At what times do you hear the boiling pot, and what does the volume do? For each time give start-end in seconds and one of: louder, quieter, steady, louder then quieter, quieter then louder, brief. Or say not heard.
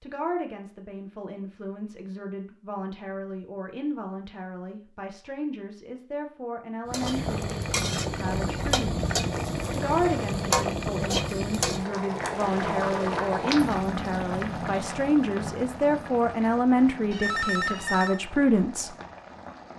6.9-19.7 quieter.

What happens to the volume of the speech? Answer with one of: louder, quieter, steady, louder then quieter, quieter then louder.
louder.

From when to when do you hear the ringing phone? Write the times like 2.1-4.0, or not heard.
17.1-18.2.